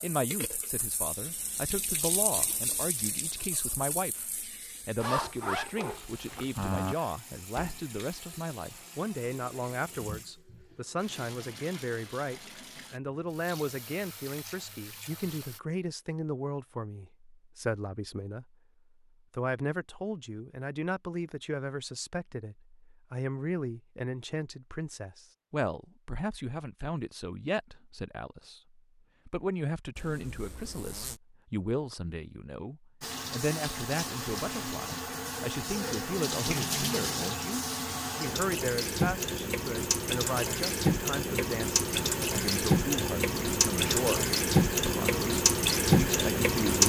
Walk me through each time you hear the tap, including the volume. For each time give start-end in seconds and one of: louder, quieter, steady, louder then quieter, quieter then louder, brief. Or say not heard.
0.0-15.6 quieter
33.0-46.8 louder.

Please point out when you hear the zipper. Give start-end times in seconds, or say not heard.
5.0-7.0, 29.9-31.1.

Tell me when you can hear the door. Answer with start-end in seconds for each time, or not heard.
not heard.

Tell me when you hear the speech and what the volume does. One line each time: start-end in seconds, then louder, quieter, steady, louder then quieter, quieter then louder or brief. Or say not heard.
0.0-18.6 steady
19.3-46.8 steady.